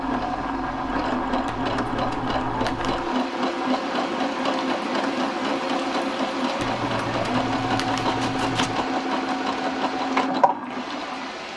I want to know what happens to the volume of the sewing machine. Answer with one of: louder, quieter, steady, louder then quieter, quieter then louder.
steady.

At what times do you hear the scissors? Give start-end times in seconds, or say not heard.
1.4-3.0, 6.5-8.8.